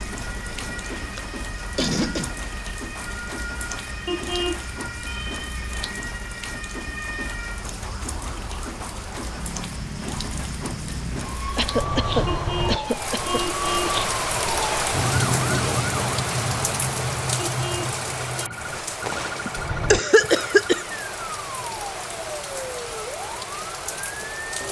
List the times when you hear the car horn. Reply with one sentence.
You can hear the car horn from 4.0 to 4.7 s, from 12.2 to 14.0 s and from 17.5 to 18.5 s.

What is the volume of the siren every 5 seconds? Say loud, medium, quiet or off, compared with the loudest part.
medium, medium, loud, loud, medium.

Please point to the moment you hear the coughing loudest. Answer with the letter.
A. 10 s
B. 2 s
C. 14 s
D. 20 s
D.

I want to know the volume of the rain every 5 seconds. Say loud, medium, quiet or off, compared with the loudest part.
medium, medium, loud, loud, medium.